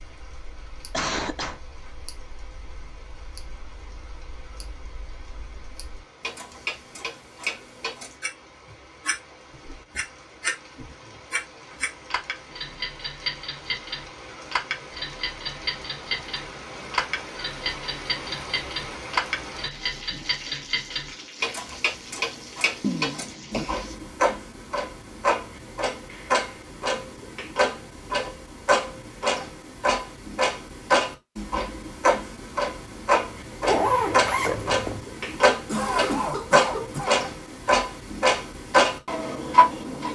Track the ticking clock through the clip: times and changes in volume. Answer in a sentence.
You can hear the ticking clock from 0.0 to 40.1 s, getting louder.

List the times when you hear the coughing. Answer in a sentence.
The coughing can be heard from 0.9 to 1.6 s, from 22.8 to 23.8 s and from 35.6 to 37.2 s.